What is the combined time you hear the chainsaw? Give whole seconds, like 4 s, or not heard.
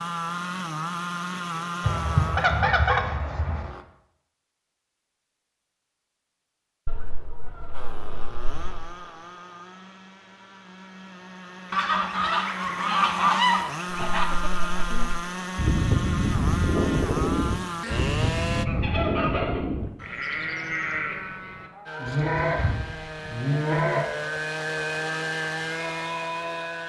20 s.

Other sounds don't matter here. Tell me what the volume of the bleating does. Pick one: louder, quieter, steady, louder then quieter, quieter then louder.
quieter.